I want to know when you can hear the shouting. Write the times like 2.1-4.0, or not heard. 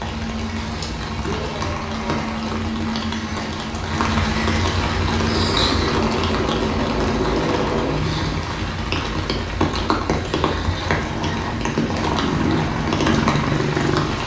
1.2-2.5.